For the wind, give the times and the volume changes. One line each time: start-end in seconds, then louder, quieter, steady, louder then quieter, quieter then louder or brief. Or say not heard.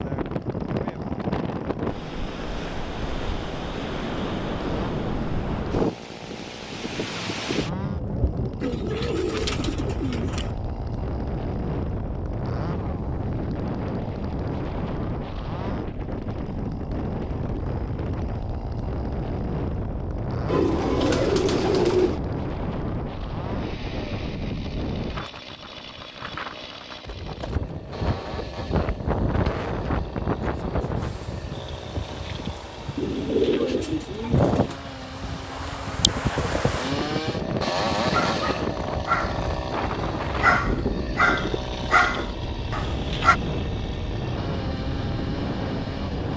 0.0-46.3 steady.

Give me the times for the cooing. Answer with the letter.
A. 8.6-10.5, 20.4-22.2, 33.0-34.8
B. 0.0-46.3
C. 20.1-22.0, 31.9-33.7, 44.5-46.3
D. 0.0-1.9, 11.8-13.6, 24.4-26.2
A.